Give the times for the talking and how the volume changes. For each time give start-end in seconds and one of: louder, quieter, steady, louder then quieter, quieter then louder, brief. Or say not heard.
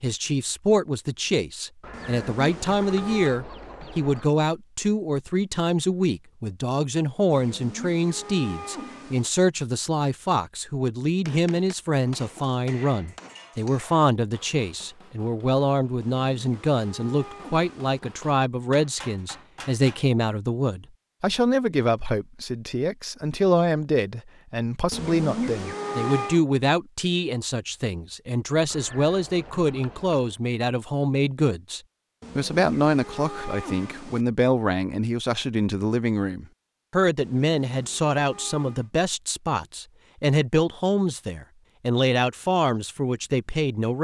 0.0-43.9 steady.